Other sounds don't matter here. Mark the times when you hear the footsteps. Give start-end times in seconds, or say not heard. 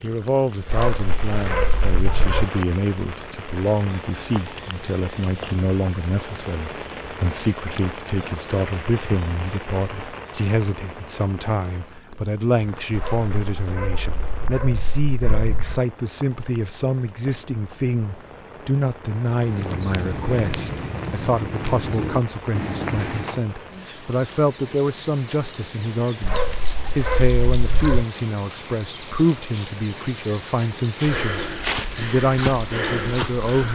19.2-23.4, 30.9-33.6.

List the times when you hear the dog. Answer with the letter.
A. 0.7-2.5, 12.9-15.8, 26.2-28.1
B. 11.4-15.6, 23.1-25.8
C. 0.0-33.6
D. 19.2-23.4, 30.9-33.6
A.